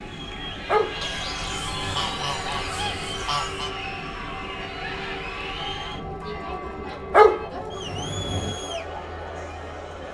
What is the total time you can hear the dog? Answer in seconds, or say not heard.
3 s.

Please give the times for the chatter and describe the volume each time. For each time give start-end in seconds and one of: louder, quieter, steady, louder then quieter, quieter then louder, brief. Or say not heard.
0.0-10.0 steady.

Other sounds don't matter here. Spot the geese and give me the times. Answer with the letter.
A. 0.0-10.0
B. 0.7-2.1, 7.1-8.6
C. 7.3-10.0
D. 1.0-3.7
D.